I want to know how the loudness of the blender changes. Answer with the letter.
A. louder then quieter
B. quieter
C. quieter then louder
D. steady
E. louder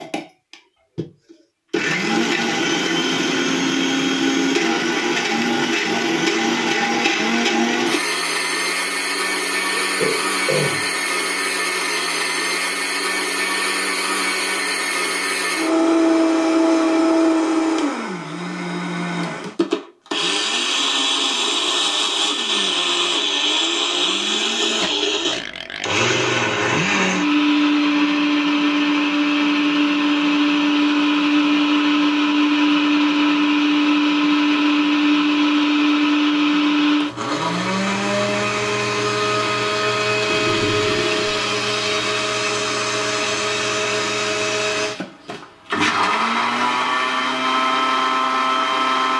D.